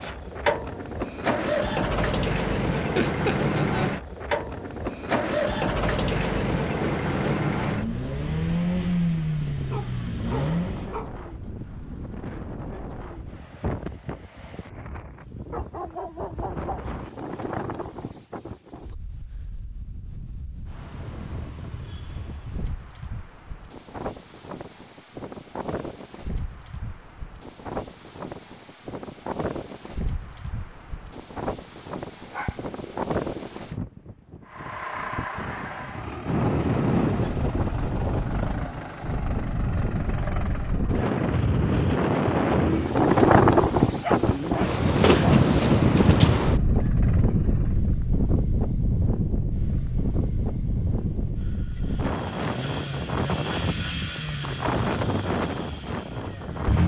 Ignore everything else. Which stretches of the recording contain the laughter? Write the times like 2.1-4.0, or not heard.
2.8-3.9.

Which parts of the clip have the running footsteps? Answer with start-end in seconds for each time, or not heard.
not heard.